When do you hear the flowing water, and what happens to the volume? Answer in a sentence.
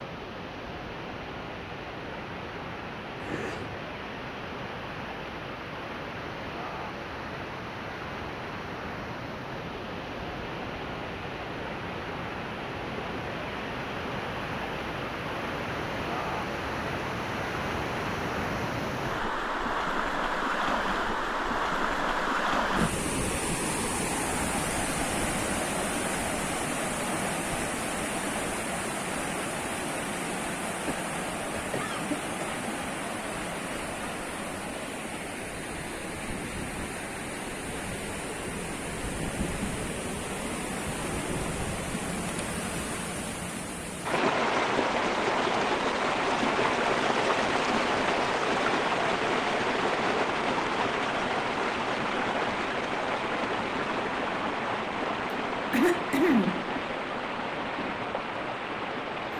The flowing water can be heard from 0.0 to 59.3 s, getting louder.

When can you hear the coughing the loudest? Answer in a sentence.
The volume of the coughing peaks at 56 seconds.